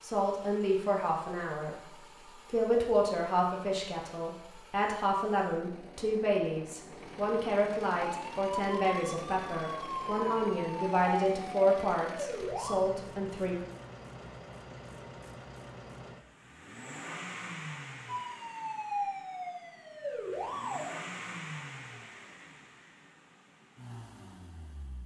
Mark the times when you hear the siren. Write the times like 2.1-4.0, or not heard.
8.1-12.8, 18.1-20.9.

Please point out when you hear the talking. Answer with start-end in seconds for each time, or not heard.
0.0-1.8, 2.5-13.6.